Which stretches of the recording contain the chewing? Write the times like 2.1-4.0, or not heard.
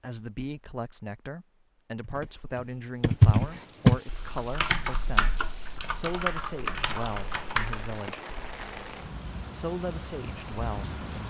not heard.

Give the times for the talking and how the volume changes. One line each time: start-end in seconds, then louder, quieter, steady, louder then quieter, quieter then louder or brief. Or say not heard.
0.0-8.2 steady
9.5-10.9 brief.